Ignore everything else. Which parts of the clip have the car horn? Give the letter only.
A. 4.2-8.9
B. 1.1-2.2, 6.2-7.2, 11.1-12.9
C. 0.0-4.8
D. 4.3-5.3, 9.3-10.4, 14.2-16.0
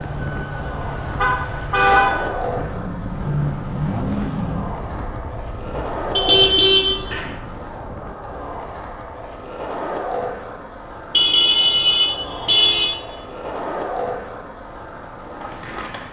B.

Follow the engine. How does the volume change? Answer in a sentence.
The loudness of the engine goes up.